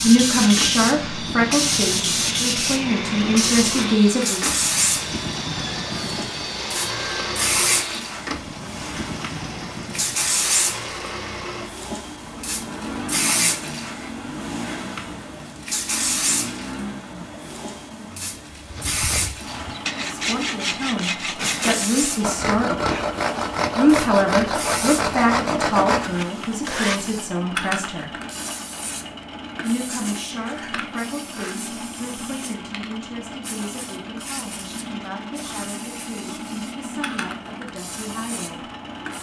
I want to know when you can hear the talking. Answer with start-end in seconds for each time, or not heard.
0.0-4.4, 20.0-22.9, 23.8-28.1, 29.6-38.6.